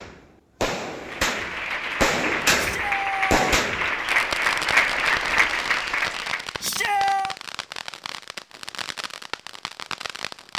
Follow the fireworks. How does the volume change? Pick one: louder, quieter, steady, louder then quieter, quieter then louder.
quieter.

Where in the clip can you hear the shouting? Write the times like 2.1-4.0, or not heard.
2.5-3.4, 6.6-7.3.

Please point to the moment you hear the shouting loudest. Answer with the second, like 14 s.
7 s.